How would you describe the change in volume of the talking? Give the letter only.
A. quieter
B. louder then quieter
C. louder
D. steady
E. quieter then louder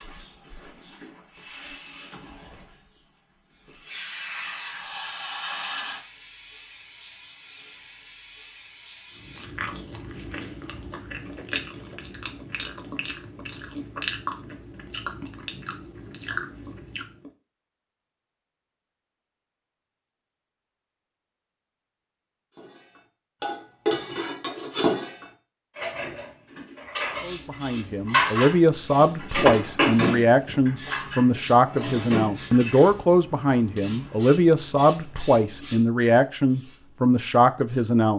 D.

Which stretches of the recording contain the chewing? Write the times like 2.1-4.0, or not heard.
9.2-17.3.